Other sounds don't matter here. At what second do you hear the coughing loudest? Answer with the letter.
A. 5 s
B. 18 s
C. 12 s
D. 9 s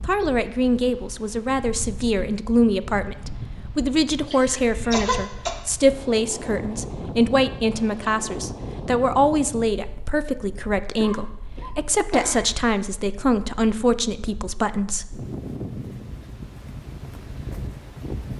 A.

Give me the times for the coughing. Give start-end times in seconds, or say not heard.
4.2-5.5, 10.9-12.4.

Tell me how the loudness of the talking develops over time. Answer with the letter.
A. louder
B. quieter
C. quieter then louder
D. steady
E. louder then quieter
D.